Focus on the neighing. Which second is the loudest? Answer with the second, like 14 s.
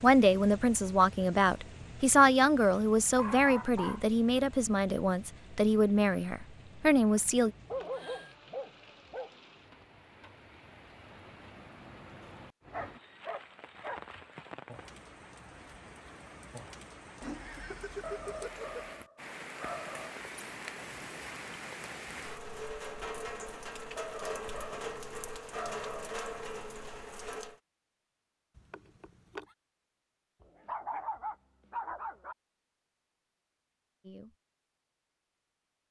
18 s.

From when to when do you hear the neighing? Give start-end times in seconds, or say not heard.
7.0-8.3, 17.2-18.6, 28.6-29.4.